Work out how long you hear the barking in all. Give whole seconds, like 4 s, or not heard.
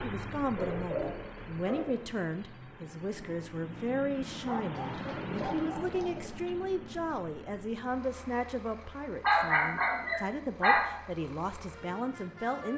5 s.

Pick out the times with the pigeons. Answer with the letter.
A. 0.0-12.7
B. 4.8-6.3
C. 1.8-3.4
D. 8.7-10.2
B.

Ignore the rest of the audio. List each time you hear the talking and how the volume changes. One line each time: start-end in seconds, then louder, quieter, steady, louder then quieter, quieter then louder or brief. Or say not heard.
0.0-12.7 steady.